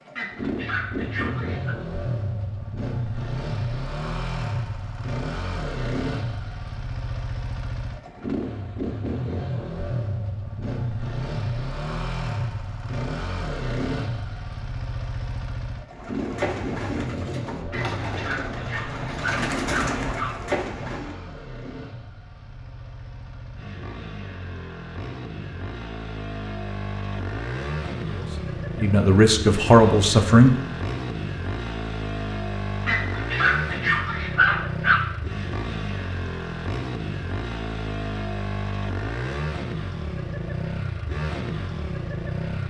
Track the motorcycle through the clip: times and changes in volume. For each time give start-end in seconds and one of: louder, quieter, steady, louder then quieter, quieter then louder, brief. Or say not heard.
0.0-42.6 quieter then louder.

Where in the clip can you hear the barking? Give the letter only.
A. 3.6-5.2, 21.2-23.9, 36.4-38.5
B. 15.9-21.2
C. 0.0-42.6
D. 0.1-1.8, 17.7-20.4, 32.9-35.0
D.